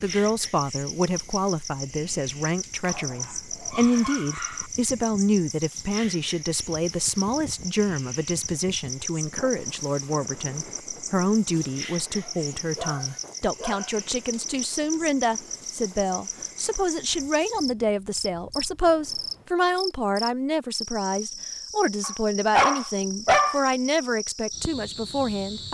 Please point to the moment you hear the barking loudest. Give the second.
23 s.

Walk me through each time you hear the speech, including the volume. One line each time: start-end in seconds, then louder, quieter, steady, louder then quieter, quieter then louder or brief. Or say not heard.
0.0-25.6 steady.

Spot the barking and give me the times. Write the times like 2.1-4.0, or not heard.
2.9-4.7, 12.2-13.9, 22.0-23.6.